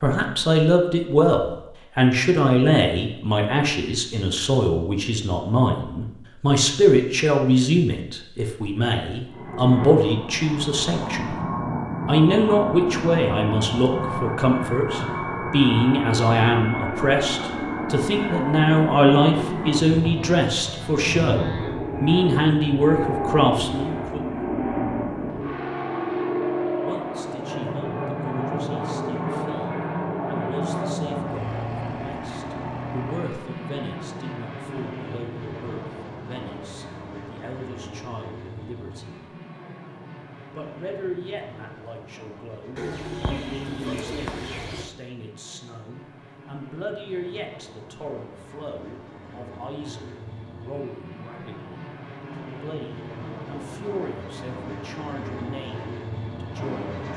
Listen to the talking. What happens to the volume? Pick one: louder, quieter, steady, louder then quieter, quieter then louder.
quieter.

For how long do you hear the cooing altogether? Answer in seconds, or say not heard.
2 s.